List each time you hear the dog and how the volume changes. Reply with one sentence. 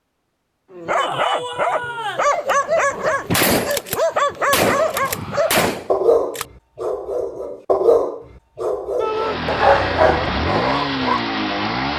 The dog can be heard from 0.8 to 11.2 s, at a steady volume.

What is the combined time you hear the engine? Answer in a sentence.
You can hear the engine for 3 seconds altogether.